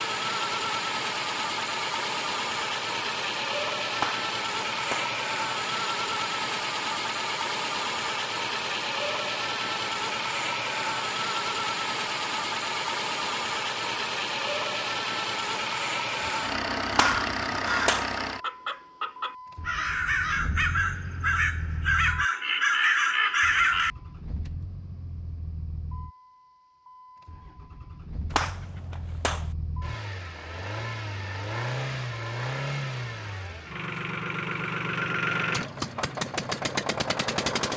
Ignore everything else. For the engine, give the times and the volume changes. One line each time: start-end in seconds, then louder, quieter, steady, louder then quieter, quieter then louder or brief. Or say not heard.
0.0-37.7 quieter then louder.